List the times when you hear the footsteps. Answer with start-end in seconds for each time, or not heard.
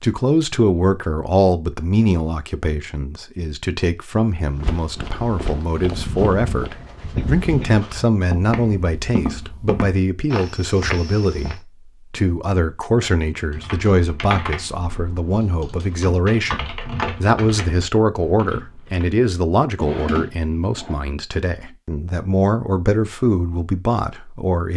4.5-11.6.